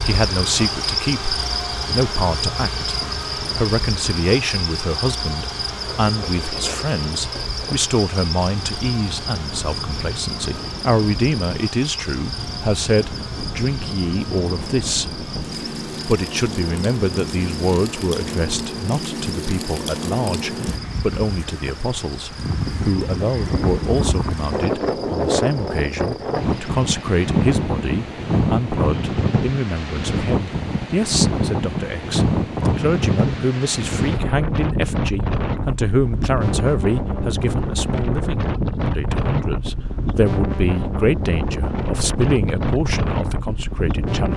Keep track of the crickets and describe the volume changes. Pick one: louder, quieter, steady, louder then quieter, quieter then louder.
quieter.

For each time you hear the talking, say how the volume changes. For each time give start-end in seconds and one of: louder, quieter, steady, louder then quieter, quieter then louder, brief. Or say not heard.
0.1-15.2 steady
16.1-44.3 steady.